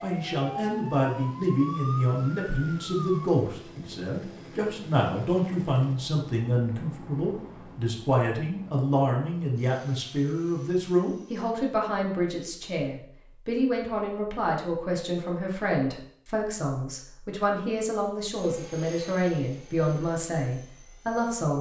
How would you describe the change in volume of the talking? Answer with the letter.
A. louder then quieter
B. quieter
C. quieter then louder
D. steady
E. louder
D.